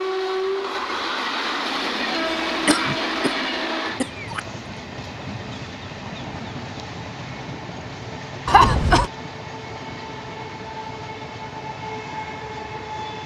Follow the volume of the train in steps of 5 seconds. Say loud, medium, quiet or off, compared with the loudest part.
loud, medium, medium.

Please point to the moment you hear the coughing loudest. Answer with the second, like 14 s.
9 s.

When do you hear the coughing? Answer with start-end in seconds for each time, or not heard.
2.6-4.4, 8.4-9.1.